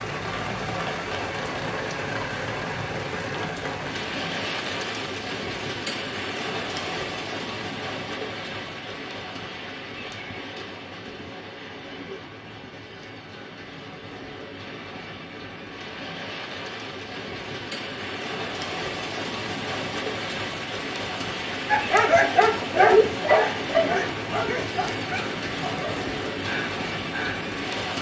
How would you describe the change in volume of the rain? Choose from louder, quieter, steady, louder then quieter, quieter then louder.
quieter then louder.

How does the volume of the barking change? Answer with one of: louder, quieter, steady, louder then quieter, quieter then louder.
quieter.